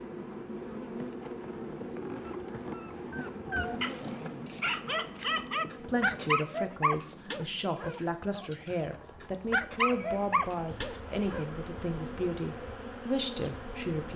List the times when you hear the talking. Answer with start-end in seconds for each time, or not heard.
5.8-14.1.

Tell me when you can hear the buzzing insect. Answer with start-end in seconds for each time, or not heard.
0.0-14.1.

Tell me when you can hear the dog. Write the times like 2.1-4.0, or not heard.
1.9-11.4.